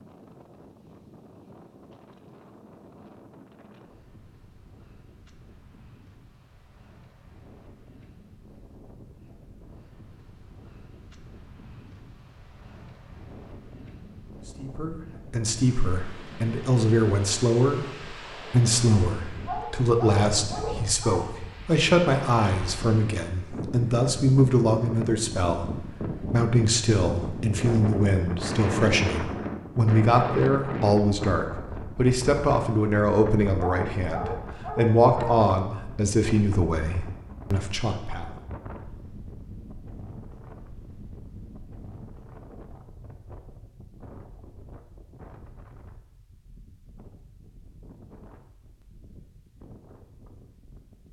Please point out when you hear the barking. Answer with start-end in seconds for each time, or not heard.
19.4-21.2, 33.6-35.4.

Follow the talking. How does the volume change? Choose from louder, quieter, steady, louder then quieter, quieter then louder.
steady.